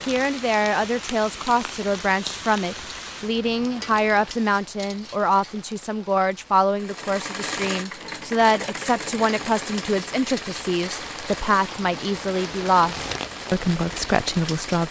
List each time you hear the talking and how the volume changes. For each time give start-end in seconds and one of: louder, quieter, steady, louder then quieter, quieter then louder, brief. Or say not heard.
0.1-14.8 steady.